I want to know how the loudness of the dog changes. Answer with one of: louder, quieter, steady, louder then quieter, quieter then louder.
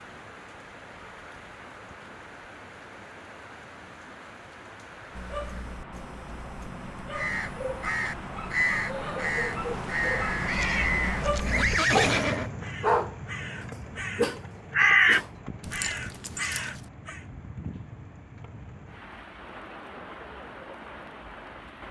louder then quieter.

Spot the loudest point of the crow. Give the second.
15 s.